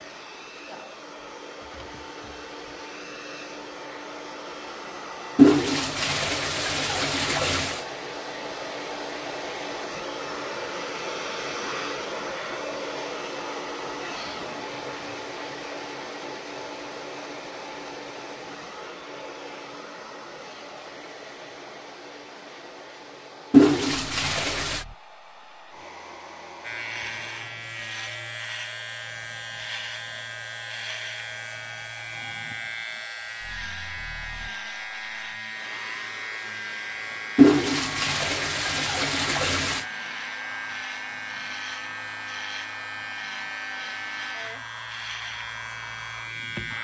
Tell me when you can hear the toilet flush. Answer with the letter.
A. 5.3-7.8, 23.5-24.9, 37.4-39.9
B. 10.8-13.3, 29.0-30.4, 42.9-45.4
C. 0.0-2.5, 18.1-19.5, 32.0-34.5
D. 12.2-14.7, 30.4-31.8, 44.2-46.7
A.